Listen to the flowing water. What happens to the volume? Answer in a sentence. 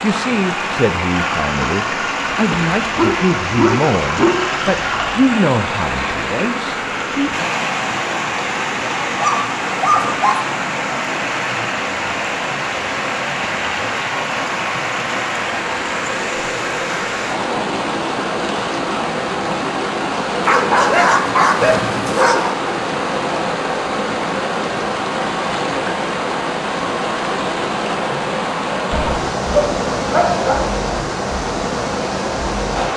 The volume of the flowing water stays about the same.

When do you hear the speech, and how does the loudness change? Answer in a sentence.
The speech can be heard from 0.0 to 7.3 s, getting louder then quieter.